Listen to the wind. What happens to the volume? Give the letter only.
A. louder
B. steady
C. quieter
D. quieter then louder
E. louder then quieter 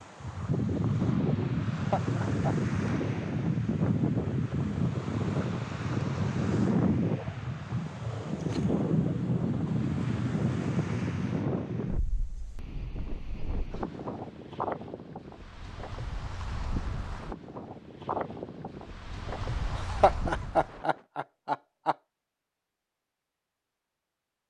C.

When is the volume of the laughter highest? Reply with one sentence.
The loudest moment of the laughter is at 20 seconds.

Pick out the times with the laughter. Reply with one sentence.
You can hear the laughter from 1.7 to 2.5 s and from 19.7 to 21.9 s.